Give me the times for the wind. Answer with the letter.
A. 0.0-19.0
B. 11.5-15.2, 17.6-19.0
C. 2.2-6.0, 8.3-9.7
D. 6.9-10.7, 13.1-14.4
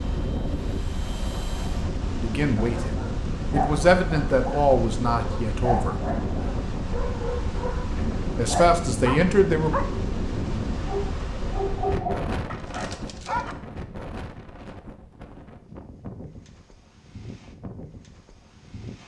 A.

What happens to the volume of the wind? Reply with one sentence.
The loudness of the wind goes down.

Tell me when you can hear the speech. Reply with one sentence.
You can hear the speech from 2.2 to 6.0 s and from 8.3 to 9.7 s.